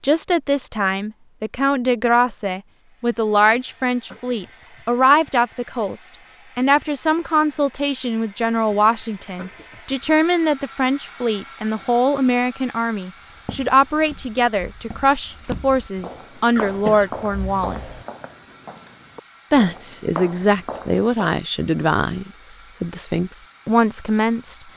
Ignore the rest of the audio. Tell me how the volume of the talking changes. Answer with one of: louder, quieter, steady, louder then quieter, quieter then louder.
steady.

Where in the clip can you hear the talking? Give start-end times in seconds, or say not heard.
0.0-18.1, 19.5-24.6.